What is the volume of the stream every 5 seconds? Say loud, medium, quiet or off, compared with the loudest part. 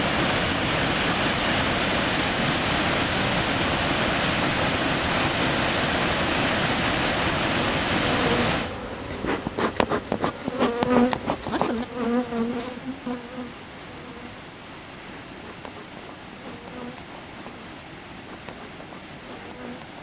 loud, loud, quiet, quiet.